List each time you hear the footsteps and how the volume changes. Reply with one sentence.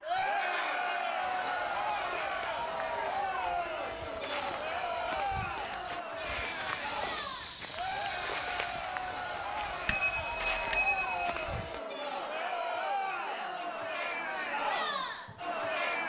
The footsteps can be heard from 1.1 to 11.8 s, getting louder.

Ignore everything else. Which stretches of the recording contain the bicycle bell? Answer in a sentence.
The bicycle bell can be heard from 9.8 to 11.4 s.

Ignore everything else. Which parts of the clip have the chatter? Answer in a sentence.
The chatter can be heard from 0.0 to 16.0 s.